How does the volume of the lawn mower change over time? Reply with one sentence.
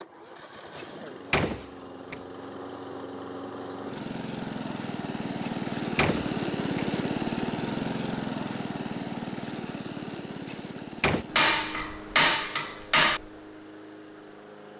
The volume of the lawn mower goes up, then down.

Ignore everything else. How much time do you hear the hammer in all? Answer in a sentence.
The hammer can be heard for 2 seconds in total.